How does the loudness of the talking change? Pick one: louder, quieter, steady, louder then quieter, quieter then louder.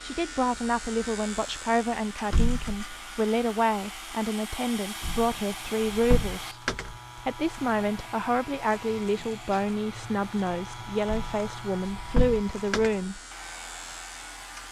steady.